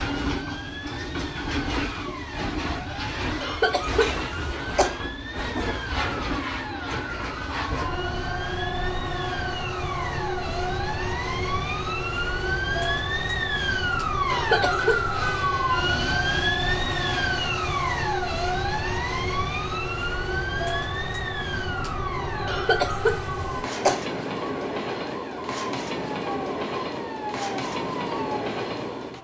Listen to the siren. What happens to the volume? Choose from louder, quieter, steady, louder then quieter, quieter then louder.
louder then quieter.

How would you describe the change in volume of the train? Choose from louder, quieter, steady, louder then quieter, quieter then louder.
steady.